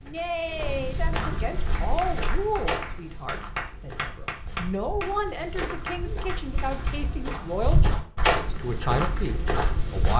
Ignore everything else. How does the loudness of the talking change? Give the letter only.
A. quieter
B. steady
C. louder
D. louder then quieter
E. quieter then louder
B.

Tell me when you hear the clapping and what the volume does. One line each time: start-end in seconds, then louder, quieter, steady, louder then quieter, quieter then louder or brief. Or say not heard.
1.6-8.9 louder then quieter.